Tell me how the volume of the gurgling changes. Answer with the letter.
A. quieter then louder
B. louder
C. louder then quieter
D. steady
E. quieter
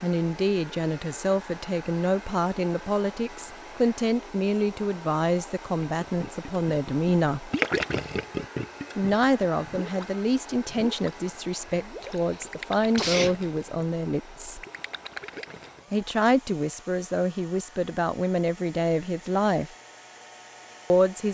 E.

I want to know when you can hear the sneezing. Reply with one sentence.
The sneezing can be heard from 12.1 to 13.3 s.